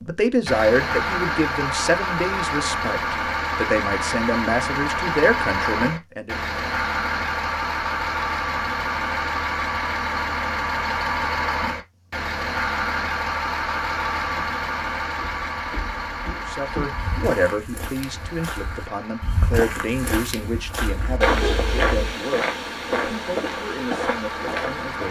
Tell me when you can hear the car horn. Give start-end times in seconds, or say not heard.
20.9-22.1.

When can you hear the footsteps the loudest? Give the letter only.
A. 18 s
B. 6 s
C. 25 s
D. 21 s
D.